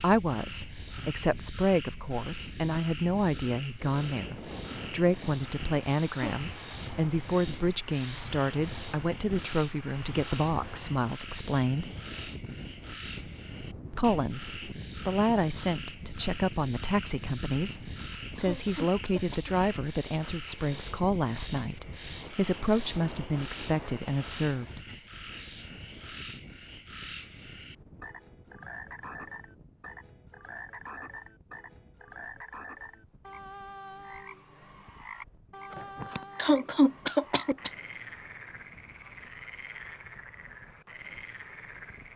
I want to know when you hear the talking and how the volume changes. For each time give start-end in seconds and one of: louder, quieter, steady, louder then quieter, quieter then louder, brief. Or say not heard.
0.0-11.9 steady
13.9-24.8 steady.